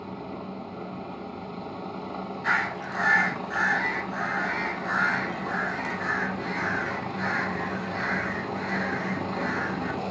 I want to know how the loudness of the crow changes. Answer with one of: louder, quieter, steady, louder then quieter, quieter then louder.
quieter.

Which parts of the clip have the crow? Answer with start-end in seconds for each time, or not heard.
2.4-9.9.